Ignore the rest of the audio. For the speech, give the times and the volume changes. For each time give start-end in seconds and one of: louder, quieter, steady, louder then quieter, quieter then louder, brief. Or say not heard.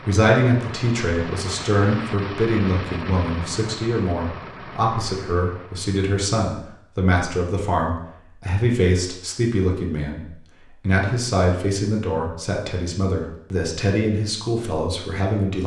0.0-15.6 steady.